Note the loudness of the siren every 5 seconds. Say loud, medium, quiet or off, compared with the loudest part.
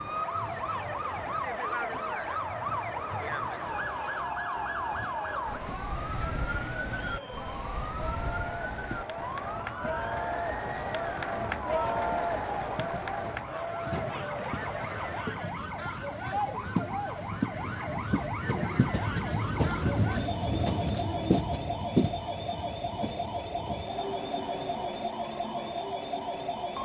loud, loud, medium, loud, loud, loud.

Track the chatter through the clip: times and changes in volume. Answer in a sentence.
You can hear the chatter from 0.0 to 15.4 s, getting louder.